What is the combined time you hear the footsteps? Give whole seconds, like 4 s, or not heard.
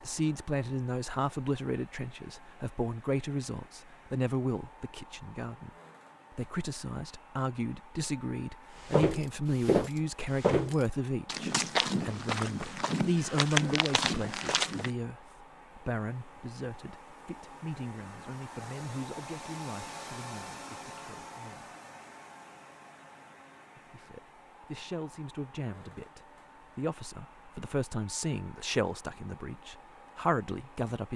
6 s.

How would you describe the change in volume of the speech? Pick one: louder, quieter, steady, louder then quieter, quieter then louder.
quieter then louder.